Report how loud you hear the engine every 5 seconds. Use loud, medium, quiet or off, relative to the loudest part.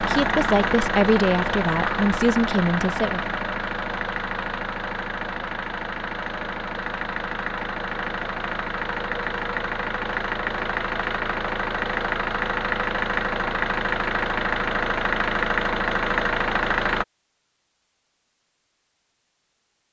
loud, medium, loud, loud.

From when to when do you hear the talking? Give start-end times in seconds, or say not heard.
0.0-3.4.